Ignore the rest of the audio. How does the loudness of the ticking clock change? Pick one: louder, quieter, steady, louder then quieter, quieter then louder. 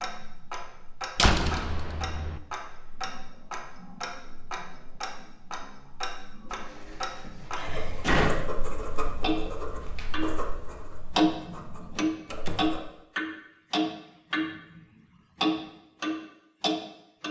louder.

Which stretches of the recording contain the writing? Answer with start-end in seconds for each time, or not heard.
7.7-12.8.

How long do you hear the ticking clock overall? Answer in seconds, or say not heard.
17 s.